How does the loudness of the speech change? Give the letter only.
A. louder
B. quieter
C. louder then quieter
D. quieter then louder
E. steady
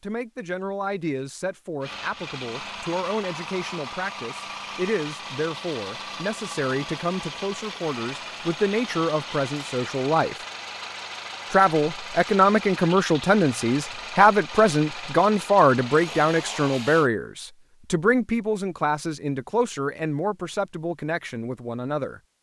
C.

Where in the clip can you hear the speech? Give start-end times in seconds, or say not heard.
0.0-10.4, 11.5-22.2.